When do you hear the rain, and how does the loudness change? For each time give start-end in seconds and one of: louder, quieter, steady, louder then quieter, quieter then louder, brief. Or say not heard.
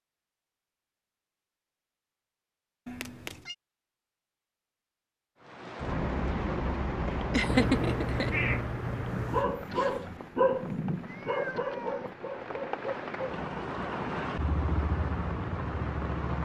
5.4-16.4 quieter then louder.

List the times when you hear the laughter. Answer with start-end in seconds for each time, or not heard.
7.3-8.3.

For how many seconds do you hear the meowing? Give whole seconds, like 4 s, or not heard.
4 s.